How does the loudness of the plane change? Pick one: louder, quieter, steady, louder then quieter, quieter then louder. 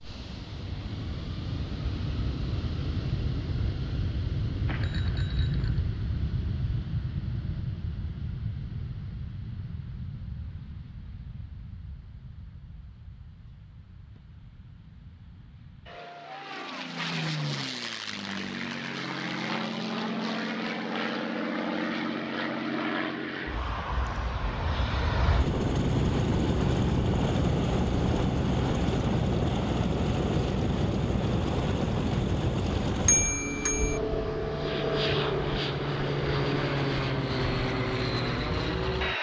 quieter then louder.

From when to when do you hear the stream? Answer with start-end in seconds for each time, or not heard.
not heard.